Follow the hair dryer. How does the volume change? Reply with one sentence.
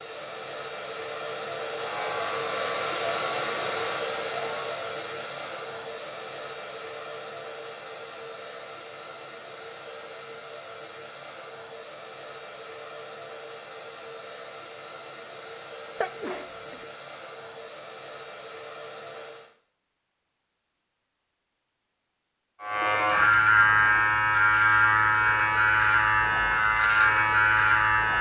The volume of the hair dryer goes down.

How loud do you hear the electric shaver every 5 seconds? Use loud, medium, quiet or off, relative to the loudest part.
quiet, off, off, off, loud, loud.